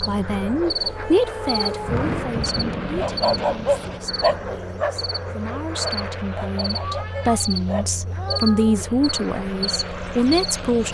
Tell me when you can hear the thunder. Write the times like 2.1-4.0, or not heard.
1.8-4.7.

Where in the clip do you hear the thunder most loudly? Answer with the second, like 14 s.
2 s.